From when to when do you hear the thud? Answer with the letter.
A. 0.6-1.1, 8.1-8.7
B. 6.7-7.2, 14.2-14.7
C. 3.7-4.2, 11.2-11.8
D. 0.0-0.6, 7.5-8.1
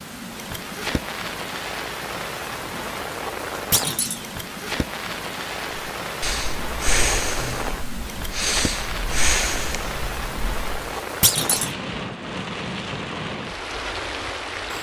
C.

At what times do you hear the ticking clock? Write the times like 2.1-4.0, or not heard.
not heard.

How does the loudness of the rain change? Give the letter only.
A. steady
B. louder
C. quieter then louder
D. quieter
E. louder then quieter
A.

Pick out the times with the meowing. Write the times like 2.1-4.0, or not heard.
not heard.